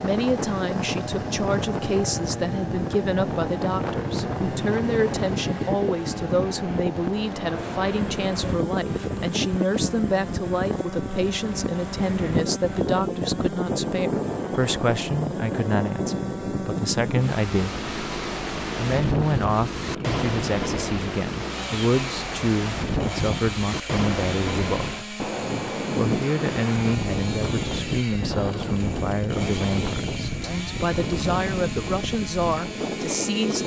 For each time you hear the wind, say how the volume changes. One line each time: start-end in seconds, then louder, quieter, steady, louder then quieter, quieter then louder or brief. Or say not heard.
0.0-33.6 steady.